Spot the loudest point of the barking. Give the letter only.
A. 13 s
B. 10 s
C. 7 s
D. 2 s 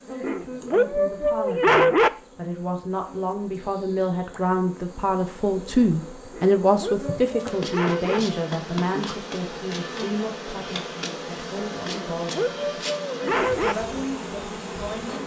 D.